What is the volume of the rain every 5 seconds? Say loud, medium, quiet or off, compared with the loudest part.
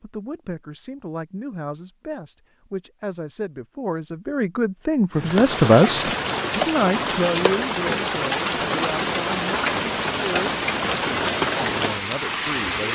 off, loud, loud.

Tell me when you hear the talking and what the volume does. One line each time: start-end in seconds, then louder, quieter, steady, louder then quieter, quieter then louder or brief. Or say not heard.
0.0-12.9 louder then quieter.